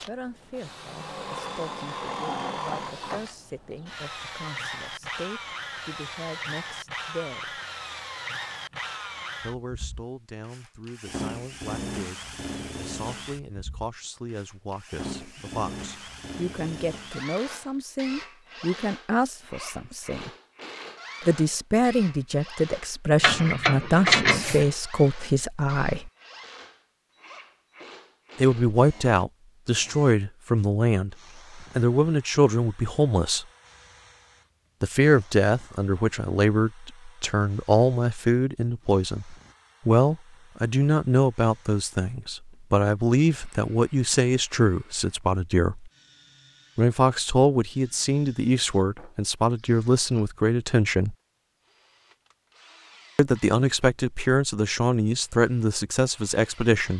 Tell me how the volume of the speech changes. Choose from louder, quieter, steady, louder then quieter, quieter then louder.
louder.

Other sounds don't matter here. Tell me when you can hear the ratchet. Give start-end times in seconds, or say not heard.
23.2-24.6.